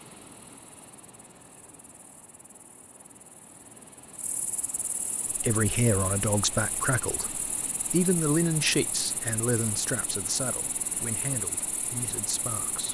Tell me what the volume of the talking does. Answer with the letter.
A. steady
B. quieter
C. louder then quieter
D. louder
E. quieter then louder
B.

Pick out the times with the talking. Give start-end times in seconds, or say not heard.
5.3-12.8.